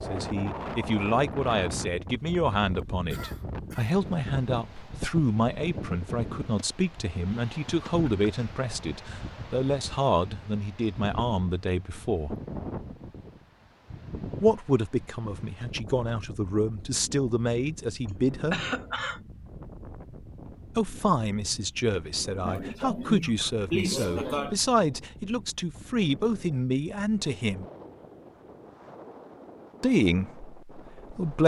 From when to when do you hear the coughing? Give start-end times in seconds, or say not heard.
3.1-4.0, 18.5-19.2, 22.4-24.6.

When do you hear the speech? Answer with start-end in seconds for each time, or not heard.
0.1-12.3, 14.4-18.6, 20.8-27.6, 29.8-31.4.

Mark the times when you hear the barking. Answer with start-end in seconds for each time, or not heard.
not heard.